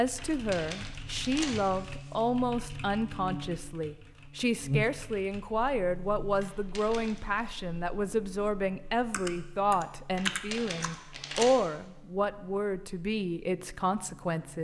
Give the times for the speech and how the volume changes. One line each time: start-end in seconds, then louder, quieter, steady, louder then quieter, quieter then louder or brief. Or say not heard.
0.0-14.5 steady.